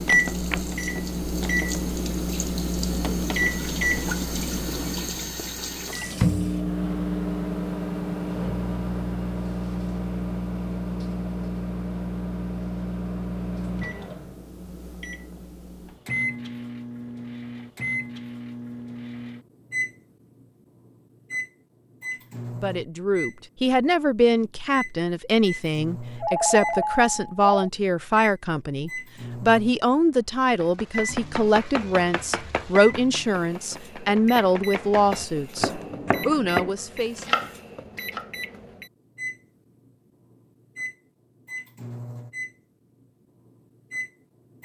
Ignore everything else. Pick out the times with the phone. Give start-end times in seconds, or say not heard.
26.2-27.7.